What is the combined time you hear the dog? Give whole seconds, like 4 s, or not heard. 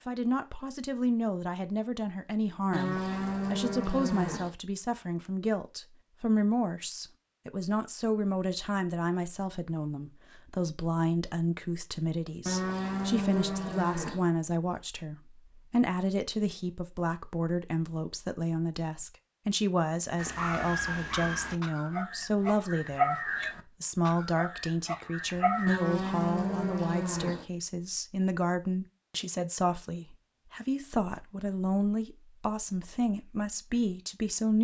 6 s.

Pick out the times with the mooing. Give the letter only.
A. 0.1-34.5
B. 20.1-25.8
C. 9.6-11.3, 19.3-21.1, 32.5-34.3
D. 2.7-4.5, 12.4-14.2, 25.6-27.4
D.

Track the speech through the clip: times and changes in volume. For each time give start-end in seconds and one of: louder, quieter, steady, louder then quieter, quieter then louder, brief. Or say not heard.
0.1-34.5 steady.